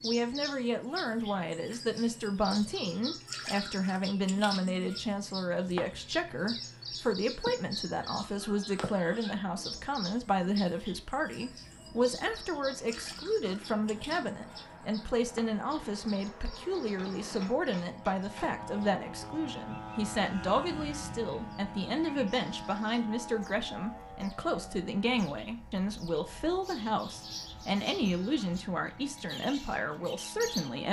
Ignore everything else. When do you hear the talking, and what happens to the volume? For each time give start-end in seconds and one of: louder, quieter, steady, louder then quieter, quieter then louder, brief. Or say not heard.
0.0-30.8 steady.